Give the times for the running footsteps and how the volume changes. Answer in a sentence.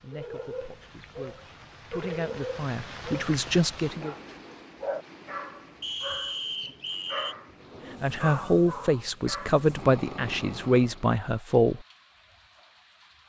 The running footsteps can't be heard in this clip.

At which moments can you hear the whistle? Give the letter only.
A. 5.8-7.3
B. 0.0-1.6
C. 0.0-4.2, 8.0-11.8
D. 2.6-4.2
A.